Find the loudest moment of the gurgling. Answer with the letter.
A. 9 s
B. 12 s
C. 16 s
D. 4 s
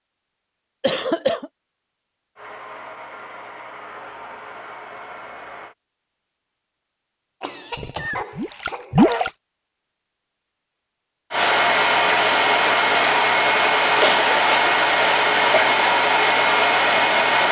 A.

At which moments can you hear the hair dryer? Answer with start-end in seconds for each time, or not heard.
2.4-5.8, 11.3-17.4.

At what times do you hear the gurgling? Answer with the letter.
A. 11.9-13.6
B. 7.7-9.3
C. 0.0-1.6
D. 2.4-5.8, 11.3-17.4
B.